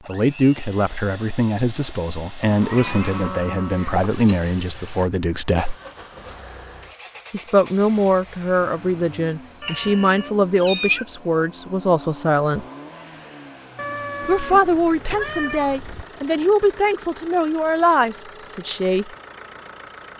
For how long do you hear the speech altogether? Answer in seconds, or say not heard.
16 s.